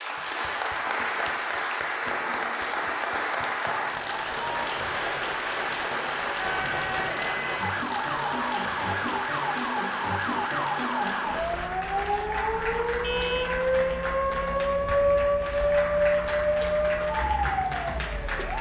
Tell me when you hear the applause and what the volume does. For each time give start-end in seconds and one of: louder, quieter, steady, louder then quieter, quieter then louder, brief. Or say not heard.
0.0-18.5 quieter.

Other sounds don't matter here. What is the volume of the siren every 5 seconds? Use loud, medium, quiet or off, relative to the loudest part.
off, medium, loud, loud.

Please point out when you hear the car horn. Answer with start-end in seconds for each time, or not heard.
13.0-13.7.